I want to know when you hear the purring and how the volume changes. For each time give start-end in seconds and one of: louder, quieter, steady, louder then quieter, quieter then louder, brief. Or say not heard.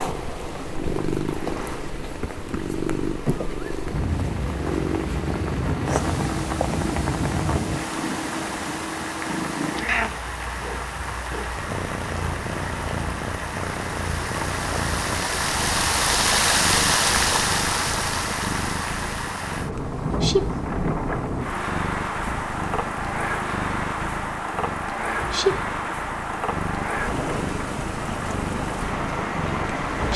0.0-30.1 steady.